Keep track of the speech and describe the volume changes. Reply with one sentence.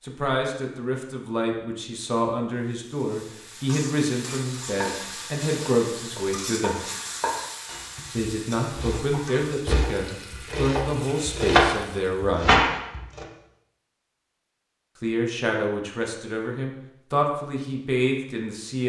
The loudness of the speech stays about the same.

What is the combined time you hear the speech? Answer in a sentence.
You can hear the speech for 15 seconds altogether.